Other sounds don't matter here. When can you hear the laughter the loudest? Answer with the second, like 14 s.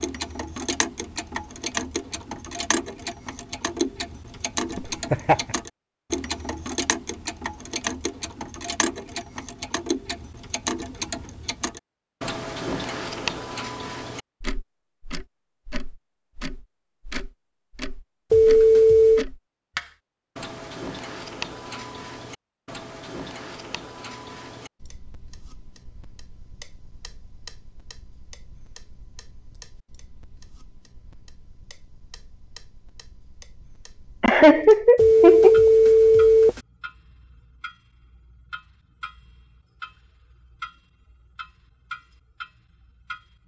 35 s.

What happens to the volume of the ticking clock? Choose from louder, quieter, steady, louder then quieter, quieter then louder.
quieter then louder.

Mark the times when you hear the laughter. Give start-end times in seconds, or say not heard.
4.8-5.5, 34.2-35.7.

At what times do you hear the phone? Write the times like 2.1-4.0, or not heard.
18.3-19.2, 35.0-36.6.